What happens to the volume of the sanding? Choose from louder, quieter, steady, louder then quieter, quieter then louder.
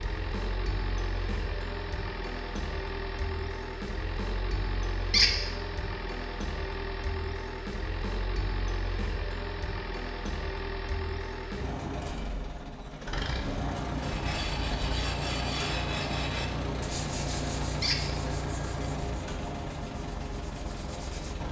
quieter.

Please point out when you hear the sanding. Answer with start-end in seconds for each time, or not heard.
13.9-21.4.